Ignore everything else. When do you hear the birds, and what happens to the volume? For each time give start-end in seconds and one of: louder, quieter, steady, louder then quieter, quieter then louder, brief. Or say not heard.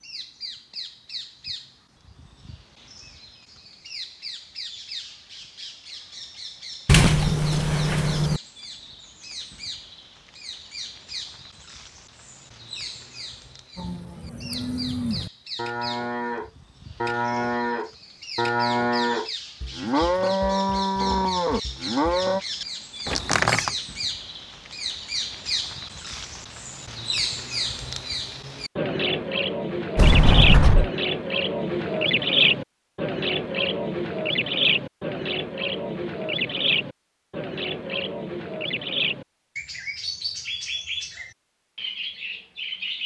0.0-43.0 louder.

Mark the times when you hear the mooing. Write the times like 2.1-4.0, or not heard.
13.8-22.4.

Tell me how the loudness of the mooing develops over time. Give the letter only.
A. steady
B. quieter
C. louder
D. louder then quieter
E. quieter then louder
C.